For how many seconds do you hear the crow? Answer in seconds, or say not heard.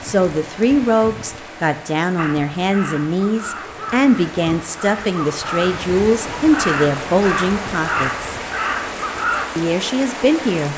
7 s.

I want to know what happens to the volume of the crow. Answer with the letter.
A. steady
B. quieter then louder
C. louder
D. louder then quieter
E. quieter
C.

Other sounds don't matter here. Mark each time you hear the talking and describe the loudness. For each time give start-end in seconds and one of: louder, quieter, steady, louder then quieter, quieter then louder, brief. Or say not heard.
0.0-8.3 steady
9.6-10.7 brief.